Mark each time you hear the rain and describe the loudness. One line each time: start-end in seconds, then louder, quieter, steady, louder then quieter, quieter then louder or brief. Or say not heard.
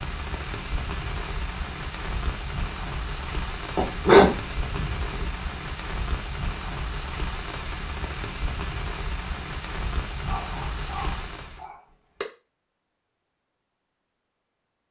0.0-11.7 steady.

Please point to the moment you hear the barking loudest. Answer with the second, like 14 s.
4 s.